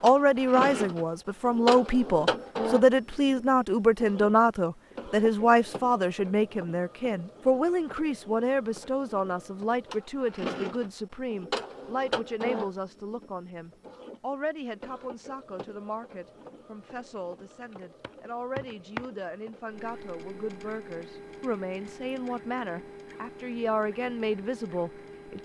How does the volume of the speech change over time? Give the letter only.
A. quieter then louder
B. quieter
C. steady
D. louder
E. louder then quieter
A.